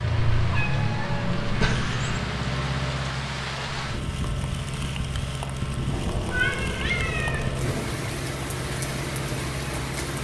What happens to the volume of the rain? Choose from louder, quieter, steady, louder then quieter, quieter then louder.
louder.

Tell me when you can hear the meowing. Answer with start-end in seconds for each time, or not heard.
0.3-2.2, 5.8-7.9.